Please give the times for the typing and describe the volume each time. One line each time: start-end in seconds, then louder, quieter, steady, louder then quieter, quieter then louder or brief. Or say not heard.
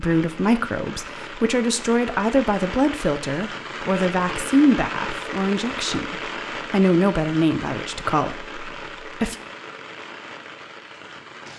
not heard.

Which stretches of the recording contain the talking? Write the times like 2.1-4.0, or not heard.
0.0-9.3.